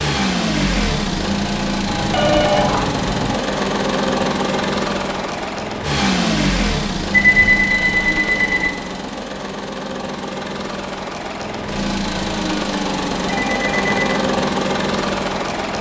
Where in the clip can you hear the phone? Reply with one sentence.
You can hear the phone from 1.9 to 3.4 s, from 7.1 to 8.7 s and from 13.2 to 14.2 s.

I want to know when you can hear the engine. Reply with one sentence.
The engine can be heard from 0.0 to 15.7 s.